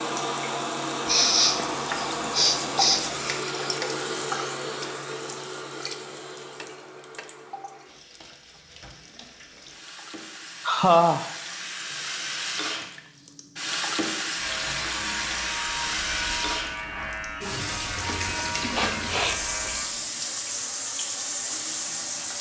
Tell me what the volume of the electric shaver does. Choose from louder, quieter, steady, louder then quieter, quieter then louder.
quieter.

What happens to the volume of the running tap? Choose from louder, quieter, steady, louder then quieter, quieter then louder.
quieter then louder.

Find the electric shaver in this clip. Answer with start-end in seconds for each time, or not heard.
14.3-22.3.